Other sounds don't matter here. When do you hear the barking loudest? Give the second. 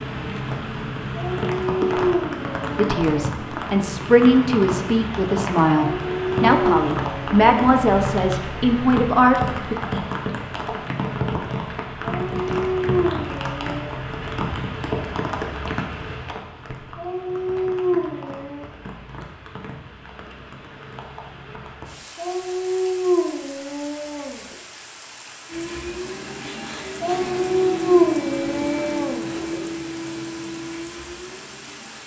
28 s.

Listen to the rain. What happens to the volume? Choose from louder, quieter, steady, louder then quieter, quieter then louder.
quieter.